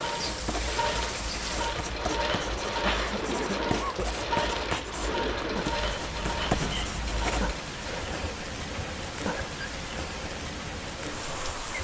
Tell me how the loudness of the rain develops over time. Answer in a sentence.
The loudness of the rain stays about the same.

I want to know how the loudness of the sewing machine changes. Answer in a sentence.
The volume of the sewing machine goes down.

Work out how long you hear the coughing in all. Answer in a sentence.
The coughing can be heard for 2 seconds in total.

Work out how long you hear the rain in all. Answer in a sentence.
The rain can be heard for 12 seconds in total.